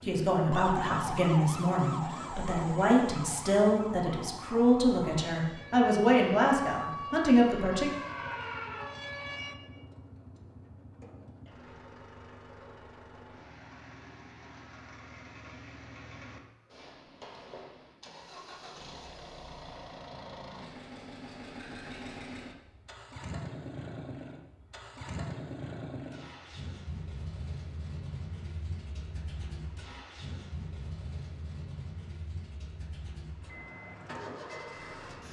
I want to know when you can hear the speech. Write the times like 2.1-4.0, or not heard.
0.0-7.9.